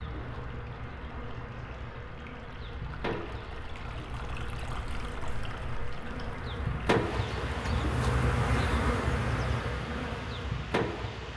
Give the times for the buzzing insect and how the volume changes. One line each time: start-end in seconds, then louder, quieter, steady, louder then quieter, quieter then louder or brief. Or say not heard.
0.0-11.3 louder.